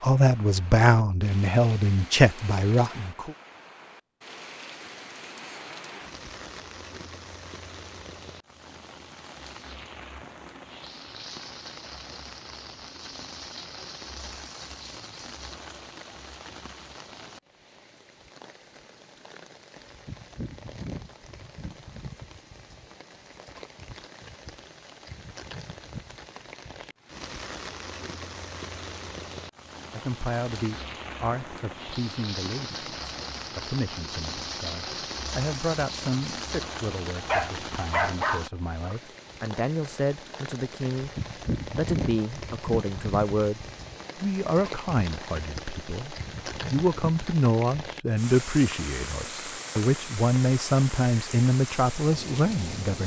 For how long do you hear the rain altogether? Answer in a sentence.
The rain can be heard for 53 seconds in total.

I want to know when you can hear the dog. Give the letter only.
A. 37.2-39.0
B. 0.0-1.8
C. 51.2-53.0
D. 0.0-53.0
A.